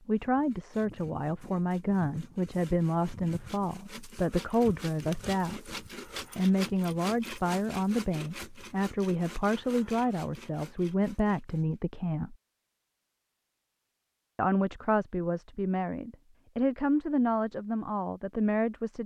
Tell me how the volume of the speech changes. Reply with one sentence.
The volume of the speech stays about the same.